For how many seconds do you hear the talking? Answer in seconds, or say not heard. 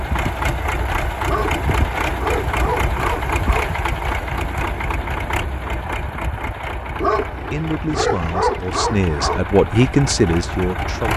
4 s.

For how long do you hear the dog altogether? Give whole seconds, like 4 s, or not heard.
5 s.